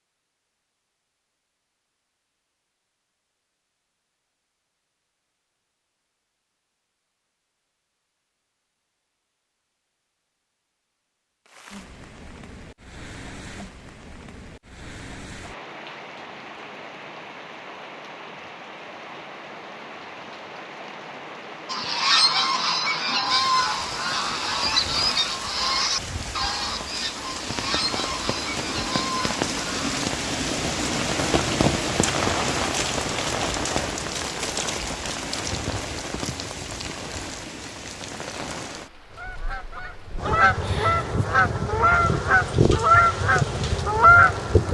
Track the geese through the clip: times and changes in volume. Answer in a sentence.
You can hear the geese from 21.6 to 30.1 s, getting quieter; and from 39.1 to 44.6 s, getting louder.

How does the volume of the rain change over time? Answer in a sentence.
The volume of the rain goes up, then down.